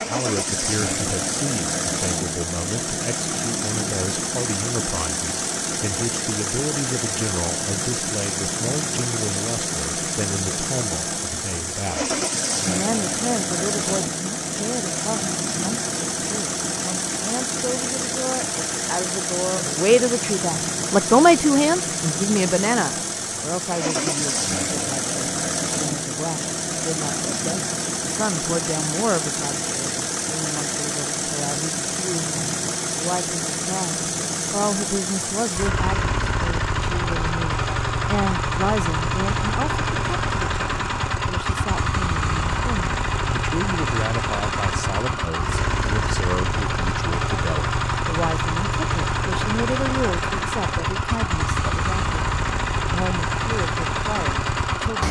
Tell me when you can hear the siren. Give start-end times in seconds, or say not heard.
not heard.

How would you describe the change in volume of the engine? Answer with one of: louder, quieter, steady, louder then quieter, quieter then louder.
steady.